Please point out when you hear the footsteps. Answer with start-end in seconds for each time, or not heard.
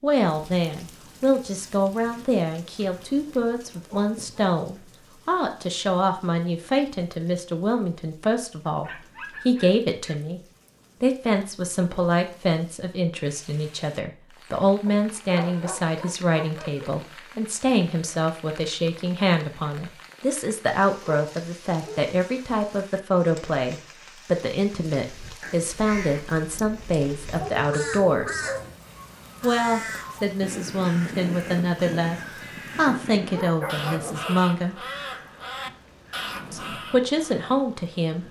not heard.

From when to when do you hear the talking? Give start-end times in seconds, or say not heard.
0.0-10.4, 11.0-28.4, 29.4-34.8, 36.5-38.2.